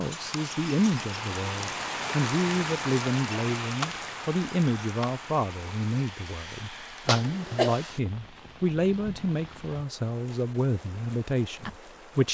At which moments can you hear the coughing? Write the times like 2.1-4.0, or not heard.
7.0-7.8.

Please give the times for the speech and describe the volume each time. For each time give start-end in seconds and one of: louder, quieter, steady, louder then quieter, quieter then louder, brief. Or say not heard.
0.0-12.2 steady.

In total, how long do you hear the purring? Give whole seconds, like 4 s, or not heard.
not heard.